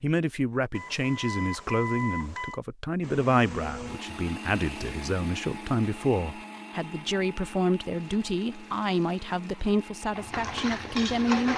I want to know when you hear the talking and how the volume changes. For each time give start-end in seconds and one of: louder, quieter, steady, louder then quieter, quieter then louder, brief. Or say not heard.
0.0-11.5 steady.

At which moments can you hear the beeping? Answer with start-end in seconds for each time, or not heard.
0.7-2.6.